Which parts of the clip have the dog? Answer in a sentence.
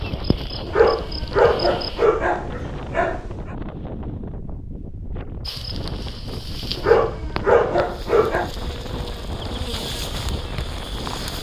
The dog can be heard from 0.7 to 3.5 s and from 6.8 to 8.5 s.